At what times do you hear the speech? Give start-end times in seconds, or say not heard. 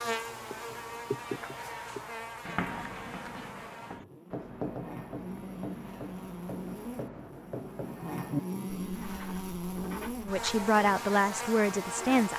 10.2-12.3.